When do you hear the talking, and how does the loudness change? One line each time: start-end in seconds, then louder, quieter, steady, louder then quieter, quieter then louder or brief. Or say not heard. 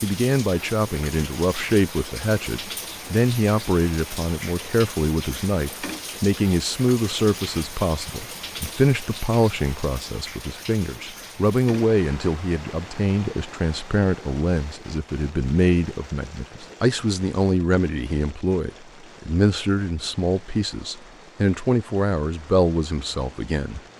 0.0-23.8 steady.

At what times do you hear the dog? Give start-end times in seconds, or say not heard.
not heard.